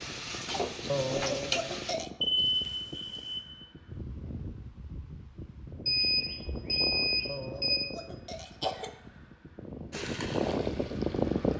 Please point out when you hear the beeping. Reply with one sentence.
You can hear the beeping from 2.2 to 3.5 s and from 5.8 to 7.8 s.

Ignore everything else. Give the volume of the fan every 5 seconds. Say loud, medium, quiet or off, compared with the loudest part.
quiet, quiet, loud.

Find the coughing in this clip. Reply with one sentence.
You can hear the coughing from 0.8 to 2.1 s and from 7.2 to 9.0 s.